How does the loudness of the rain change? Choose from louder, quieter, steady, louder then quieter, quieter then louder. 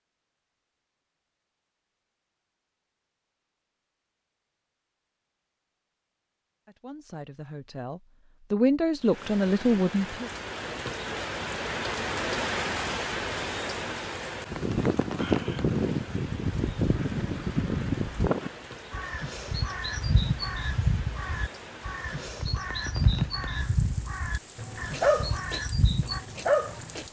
quieter.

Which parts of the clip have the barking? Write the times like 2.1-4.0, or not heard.
24.6-27.0.